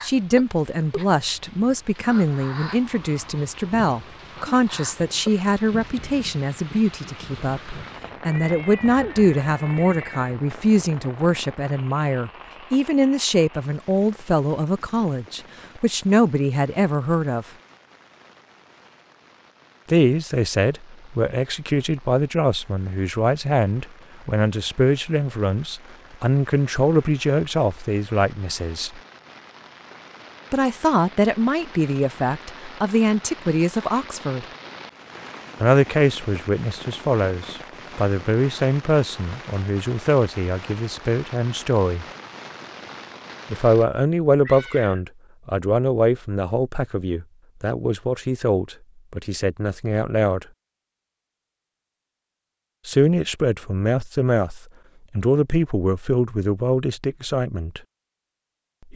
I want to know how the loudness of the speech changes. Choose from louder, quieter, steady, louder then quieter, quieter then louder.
steady.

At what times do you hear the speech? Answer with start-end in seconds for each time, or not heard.
0.0-17.4, 19.9-29.0, 30.5-34.5, 35.6-42.0, 43.5-50.5, 52.9-57.8.